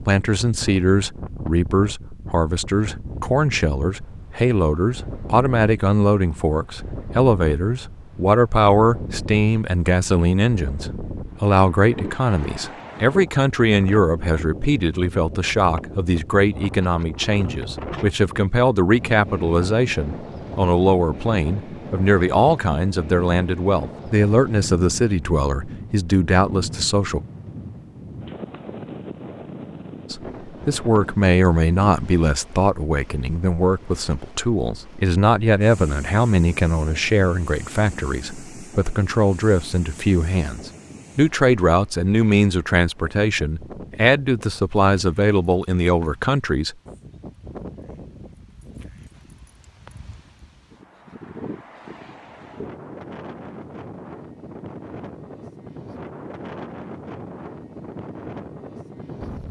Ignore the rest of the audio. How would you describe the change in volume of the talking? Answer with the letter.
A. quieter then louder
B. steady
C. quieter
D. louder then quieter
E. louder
B.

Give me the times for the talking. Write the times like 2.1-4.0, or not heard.
0.0-27.2, 30.1-46.8.